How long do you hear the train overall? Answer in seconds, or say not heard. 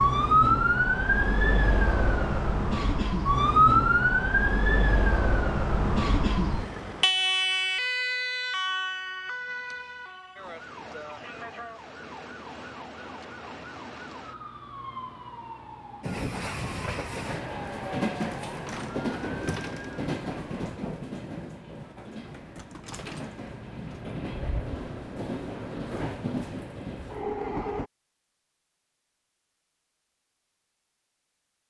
12 s.